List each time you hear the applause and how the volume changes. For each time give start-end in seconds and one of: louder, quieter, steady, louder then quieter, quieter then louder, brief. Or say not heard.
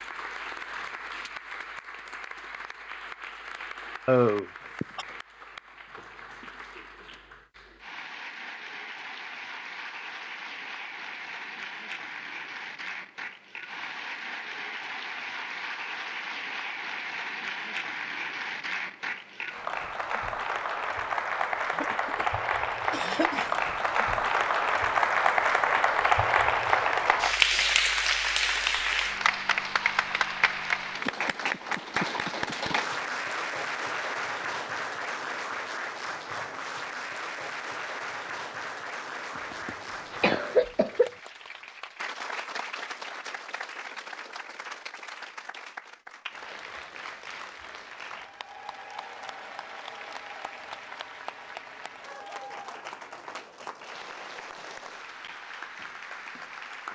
0.0-56.9 louder then quieter.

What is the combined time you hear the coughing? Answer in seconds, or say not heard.
4 s.